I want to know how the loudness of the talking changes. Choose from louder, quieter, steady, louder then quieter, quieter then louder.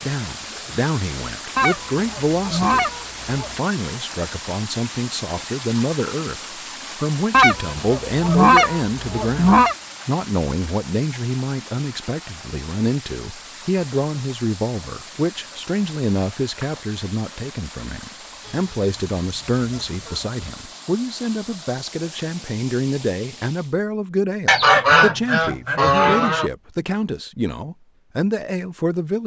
steady.